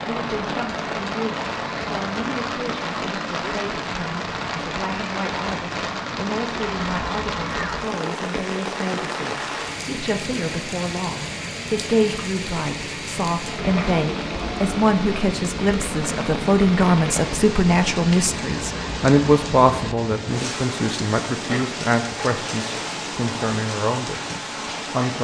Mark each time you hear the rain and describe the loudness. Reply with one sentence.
The rain can be heard from 0.0 to 25.1 s, at a steady volume.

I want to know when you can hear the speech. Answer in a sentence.
The speech can be heard from 0.1 to 25.1 s.